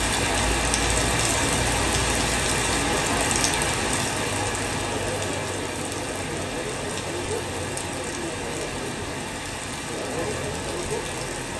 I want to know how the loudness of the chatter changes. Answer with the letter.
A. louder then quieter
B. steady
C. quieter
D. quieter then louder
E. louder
B.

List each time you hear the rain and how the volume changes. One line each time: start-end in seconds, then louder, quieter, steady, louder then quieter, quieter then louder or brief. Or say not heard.
0.0-11.5 quieter.